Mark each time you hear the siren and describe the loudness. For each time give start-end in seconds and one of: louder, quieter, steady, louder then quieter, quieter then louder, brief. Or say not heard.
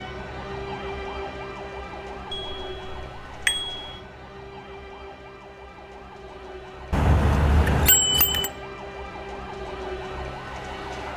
0.0-11.1 quieter then louder.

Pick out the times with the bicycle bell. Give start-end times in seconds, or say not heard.
2.3-4.0, 6.9-8.5.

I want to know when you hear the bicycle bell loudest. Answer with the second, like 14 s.
8 s.